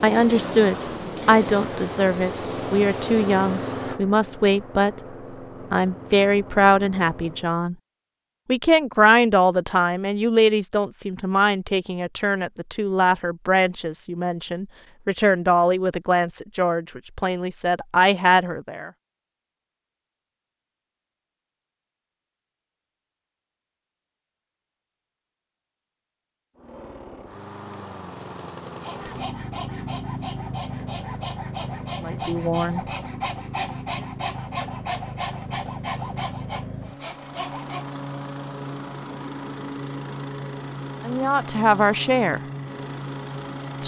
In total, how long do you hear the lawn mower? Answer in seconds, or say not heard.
25 s.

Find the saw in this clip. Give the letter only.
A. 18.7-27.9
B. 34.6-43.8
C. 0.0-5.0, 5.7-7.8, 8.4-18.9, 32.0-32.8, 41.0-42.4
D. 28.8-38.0
D.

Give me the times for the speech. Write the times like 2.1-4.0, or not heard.
0.0-5.0, 5.7-7.8, 8.4-18.9, 32.0-32.8, 41.0-42.4.